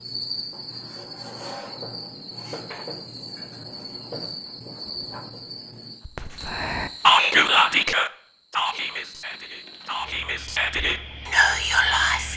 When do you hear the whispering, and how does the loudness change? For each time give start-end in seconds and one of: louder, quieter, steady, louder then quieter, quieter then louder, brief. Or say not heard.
6.0-12.3 quieter then louder.